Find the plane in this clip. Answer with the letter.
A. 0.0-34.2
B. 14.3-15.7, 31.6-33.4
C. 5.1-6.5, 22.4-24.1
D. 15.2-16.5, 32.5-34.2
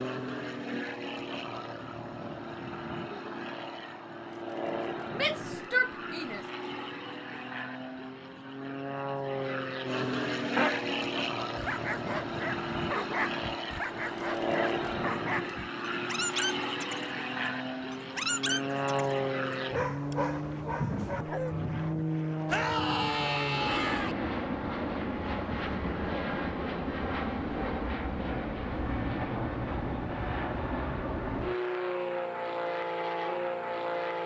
A.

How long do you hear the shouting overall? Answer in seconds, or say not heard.
3 s.